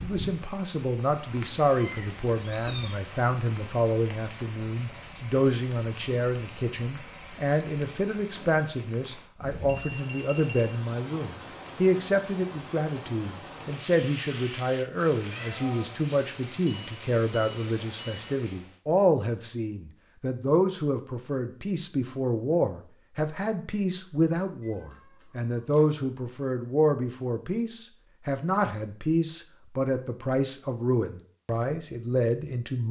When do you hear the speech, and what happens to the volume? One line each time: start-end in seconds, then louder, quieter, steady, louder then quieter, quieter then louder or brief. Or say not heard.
0.0-32.8 steady.